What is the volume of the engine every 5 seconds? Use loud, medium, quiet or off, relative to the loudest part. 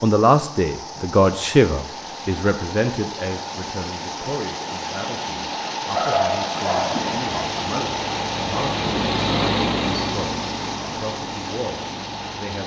off, loud, medium.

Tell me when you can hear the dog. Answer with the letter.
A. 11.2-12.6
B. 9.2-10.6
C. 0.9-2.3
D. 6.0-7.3
D.